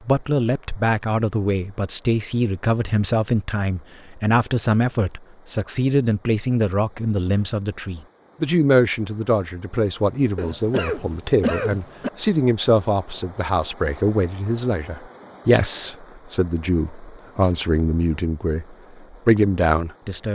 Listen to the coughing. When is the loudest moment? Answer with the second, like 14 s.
12 s.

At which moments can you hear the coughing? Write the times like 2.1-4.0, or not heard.
10.3-12.1.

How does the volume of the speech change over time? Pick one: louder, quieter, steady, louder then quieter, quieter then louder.
steady.